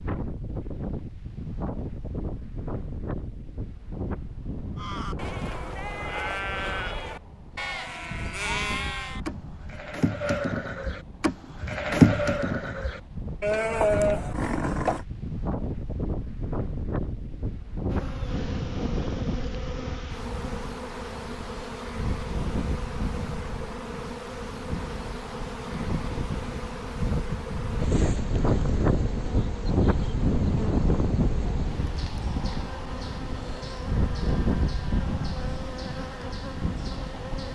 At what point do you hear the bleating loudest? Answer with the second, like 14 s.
12 s.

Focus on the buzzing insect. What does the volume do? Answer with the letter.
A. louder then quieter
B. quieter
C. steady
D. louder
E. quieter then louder
C.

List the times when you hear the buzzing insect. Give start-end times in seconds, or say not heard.
17.9-37.4.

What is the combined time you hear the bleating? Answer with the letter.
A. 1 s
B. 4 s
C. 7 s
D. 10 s
D.